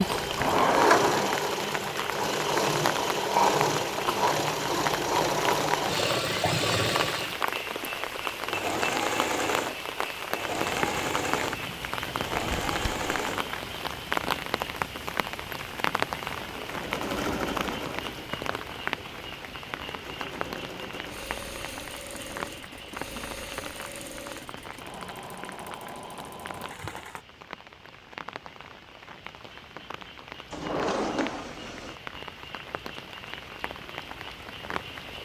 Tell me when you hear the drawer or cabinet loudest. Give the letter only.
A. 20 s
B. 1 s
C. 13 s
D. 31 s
B.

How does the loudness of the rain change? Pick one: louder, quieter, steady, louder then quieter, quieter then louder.
quieter.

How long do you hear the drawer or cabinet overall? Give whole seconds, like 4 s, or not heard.
3 s.